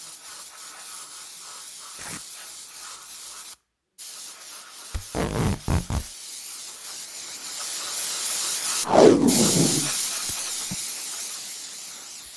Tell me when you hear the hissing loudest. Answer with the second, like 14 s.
10 s.